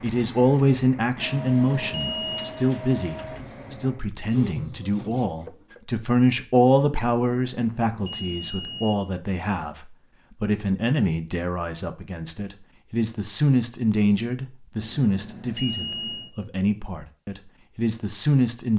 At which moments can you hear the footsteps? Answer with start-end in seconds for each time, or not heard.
not heard.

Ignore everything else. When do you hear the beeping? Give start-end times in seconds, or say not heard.
1.1-2.5, 7.5-8.9, 14.8-16.4.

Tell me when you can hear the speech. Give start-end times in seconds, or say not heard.
0.0-18.7.